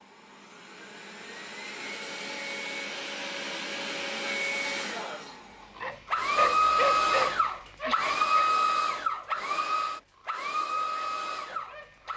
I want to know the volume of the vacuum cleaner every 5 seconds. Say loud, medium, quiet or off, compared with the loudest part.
medium, loud, medium.